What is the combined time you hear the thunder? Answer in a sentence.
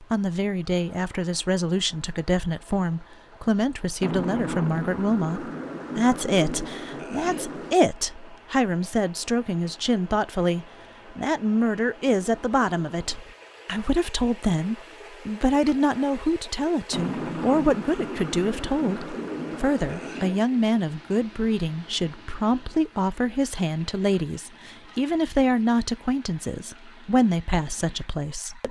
You can hear the thunder for 7 seconds altogether.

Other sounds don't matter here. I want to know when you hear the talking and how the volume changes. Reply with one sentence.
The talking can be heard from 0.0 to 28.6 s, at a steady volume.